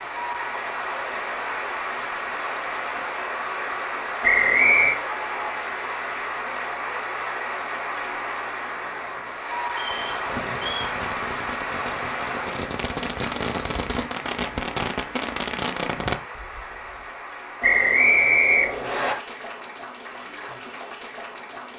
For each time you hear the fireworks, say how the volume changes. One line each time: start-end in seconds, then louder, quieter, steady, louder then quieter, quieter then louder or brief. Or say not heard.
9.8-17.0 louder.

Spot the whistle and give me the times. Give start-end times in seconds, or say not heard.
4.2-5.0, 9.7-10.9, 17.6-19.1.